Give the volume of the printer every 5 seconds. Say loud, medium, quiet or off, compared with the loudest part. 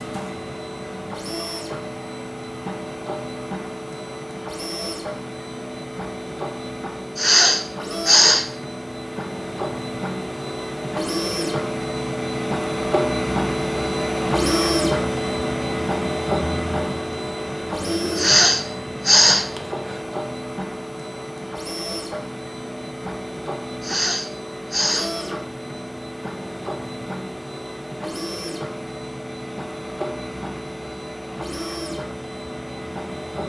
medium, medium, loud, loud, medium, medium, medium.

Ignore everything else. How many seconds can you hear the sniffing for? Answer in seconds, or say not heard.
4 s.